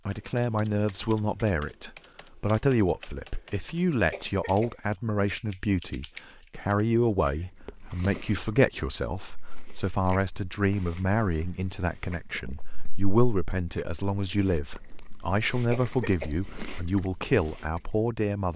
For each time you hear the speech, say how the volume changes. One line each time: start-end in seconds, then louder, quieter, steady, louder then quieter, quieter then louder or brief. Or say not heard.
0.1-18.5 steady.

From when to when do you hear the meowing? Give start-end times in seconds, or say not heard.
not heard.